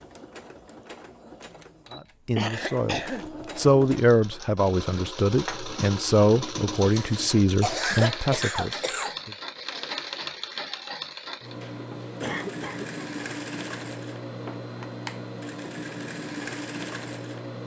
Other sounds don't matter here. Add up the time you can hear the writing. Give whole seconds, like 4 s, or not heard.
not heard.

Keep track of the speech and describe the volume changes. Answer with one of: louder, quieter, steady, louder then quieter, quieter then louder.
louder then quieter.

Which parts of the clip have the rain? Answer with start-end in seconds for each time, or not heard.
not heard.